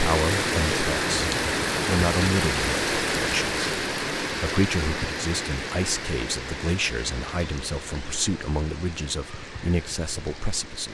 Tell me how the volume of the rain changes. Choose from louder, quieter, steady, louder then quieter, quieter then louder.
quieter.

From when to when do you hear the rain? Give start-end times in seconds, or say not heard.
0.0-10.8.